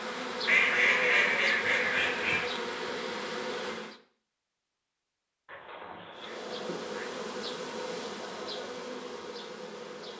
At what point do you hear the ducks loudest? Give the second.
1 s.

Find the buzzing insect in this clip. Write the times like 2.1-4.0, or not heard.
0.0-4.0, 6.1-10.1.